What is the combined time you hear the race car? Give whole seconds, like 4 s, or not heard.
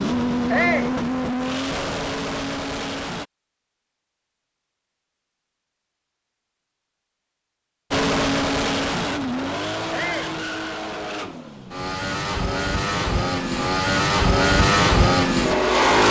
11 s.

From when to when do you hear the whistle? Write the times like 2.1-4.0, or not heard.
not heard.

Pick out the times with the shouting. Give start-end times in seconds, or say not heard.
0.5-0.9, 9.9-10.3.